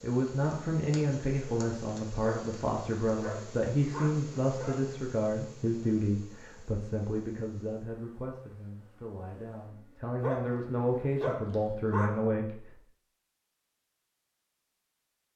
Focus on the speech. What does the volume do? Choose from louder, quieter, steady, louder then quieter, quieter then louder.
quieter then louder.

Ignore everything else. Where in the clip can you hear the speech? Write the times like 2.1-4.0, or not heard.
0.0-12.8.